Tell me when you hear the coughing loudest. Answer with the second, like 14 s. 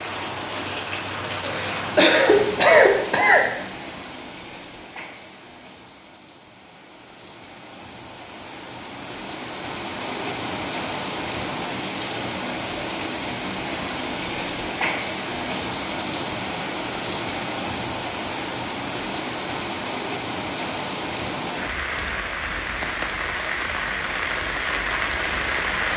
3 s.